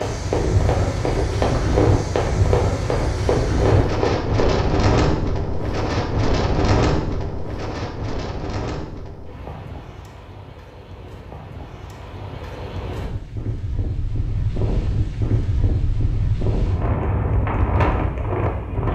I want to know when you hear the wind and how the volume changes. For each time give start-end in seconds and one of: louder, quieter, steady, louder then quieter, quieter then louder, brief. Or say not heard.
0.0-18.9 quieter then louder.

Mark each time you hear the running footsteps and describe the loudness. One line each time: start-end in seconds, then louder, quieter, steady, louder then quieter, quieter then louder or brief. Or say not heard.
0.0-4.7 steady.